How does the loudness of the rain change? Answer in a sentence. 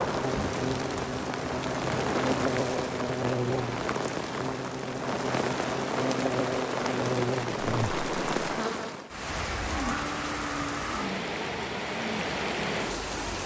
The volume of the rain stays about the same.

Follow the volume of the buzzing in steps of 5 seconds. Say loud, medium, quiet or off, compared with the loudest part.
loud, loud, off.